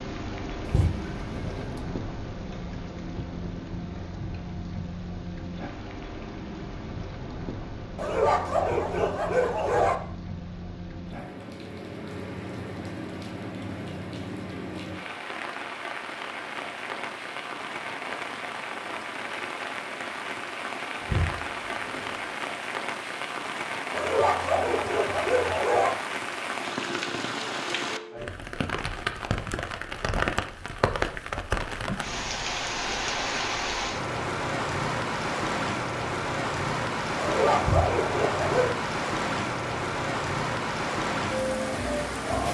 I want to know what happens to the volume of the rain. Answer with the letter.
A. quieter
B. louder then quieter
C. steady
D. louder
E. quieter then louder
D.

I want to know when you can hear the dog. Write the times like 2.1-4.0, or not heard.
8.0-9.9, 23.9-25.9, 37.1-38.8.